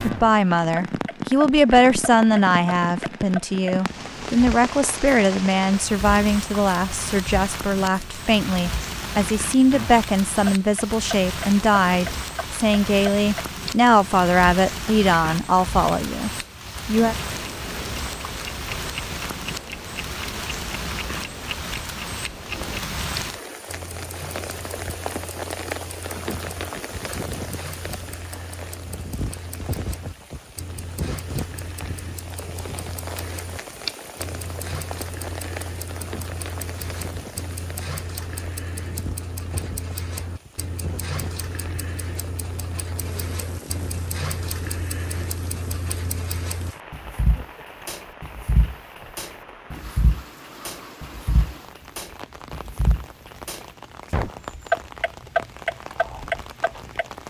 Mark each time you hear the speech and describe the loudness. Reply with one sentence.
The speech can be heard from 0.0 to 17.1 s, at a steady volume.